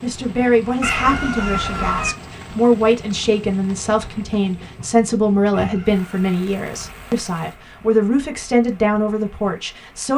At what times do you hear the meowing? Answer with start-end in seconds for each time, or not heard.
0.8-2.1, 5.5-6.5.